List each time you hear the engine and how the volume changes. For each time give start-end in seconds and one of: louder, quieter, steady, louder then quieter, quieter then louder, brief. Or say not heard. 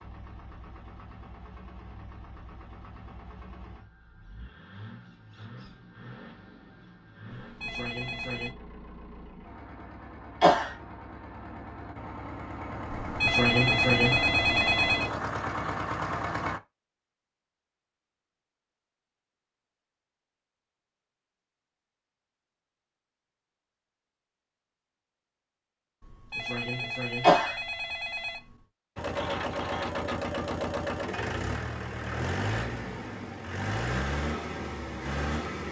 0.0-16.6 louder
28.9-35.6 steady.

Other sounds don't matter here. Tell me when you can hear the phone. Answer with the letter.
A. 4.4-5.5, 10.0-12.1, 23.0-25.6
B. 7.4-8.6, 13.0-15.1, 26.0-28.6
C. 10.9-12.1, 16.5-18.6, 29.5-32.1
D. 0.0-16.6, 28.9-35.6
B.